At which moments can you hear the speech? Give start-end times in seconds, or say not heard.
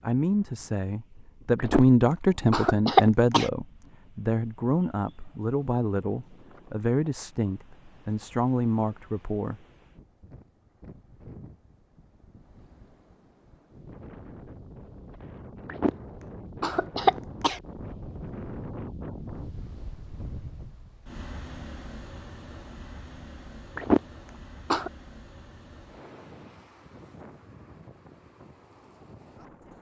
0.0-9.6.